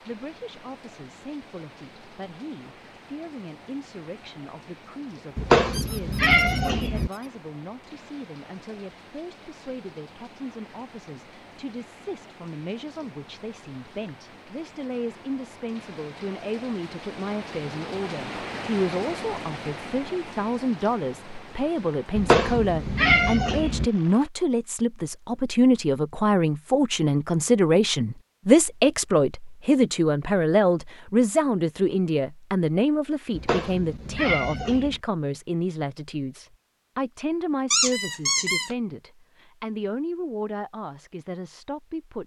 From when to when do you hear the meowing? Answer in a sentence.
You can hear the meowing from 5.3 to 7.1 s, from 22.1 to 23.9 s and from 33.3 to 35.0 s.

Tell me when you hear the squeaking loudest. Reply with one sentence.
The volume of the squeaking peaks at 38 seconds.